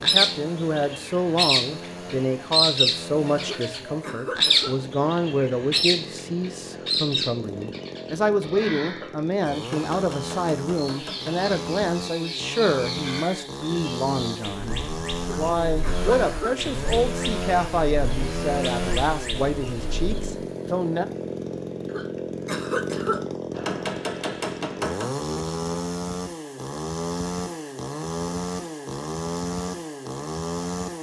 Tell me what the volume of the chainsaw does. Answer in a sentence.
The loudness of the chainsaw goes up.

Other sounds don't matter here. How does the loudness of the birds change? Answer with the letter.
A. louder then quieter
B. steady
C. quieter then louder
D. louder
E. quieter
E.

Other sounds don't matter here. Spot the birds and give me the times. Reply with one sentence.
You can hear the birds from 0.0 to 20.4 s.